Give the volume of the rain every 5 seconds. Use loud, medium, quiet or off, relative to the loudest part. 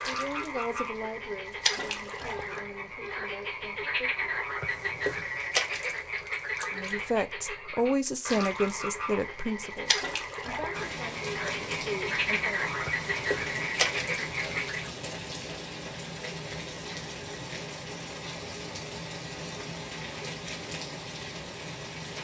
off, off, loud, loud, loud.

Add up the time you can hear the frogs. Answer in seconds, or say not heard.
15 s.